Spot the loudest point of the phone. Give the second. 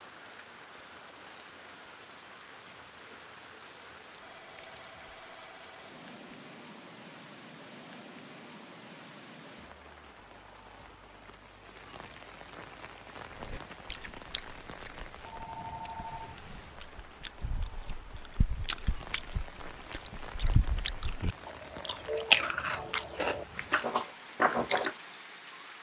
16 s.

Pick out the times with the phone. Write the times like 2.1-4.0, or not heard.
4.2-5.9, 15.2-16.4.